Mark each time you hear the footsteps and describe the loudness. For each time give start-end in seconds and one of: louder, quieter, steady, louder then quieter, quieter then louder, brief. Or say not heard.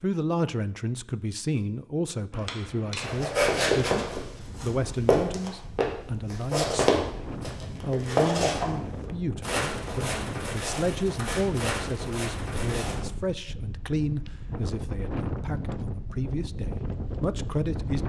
3.0-13.0 quieter.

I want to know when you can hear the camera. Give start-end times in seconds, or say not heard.
2.3-3.1.